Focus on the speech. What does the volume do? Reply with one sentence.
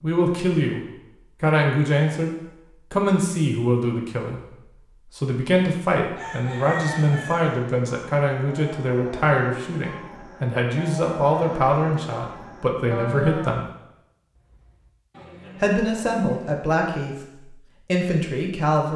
The volume of the speech stays about the same.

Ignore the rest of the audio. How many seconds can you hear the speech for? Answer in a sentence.
You can hear the speech for 17 seconds altogether.